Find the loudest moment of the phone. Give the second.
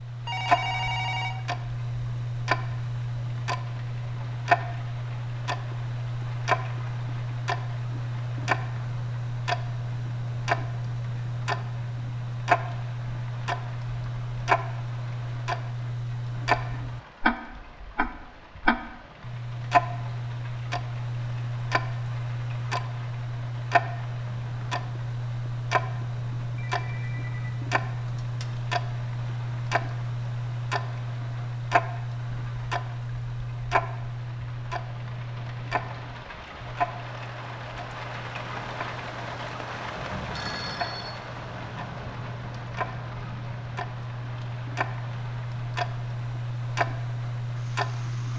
1 s.